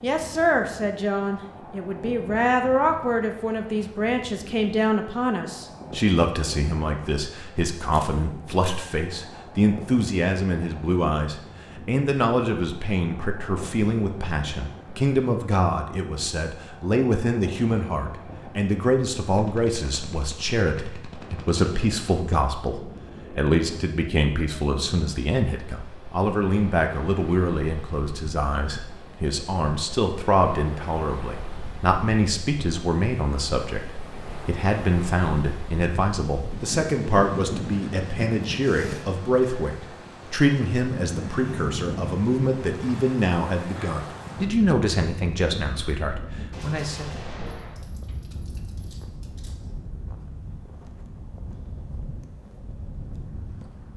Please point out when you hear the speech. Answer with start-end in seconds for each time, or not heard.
0.0-47.1.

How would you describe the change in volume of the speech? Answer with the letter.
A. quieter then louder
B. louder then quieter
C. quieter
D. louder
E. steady
E.